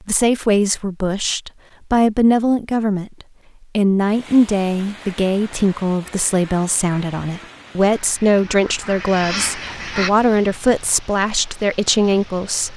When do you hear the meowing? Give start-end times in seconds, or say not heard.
not heard.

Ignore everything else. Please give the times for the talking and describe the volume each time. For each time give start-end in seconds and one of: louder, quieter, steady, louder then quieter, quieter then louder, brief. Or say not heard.
0.1-12.7 steady.